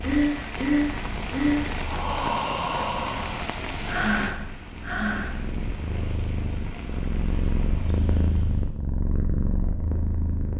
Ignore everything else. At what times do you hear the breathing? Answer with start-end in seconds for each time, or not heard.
0.0-5.3.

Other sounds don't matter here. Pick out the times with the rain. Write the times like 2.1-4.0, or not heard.
0.0-8.8.